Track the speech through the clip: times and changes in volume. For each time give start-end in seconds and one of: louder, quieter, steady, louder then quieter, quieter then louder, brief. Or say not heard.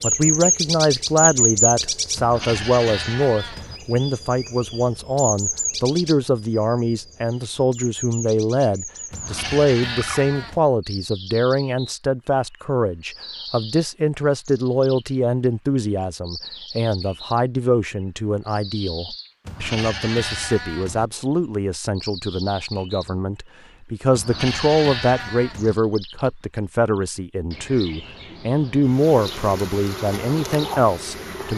0.0-31.5 steady.